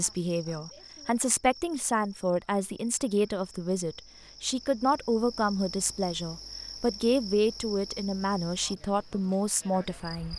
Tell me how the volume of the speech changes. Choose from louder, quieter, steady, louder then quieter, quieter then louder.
steady.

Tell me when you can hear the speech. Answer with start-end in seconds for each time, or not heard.
0.0-10.3.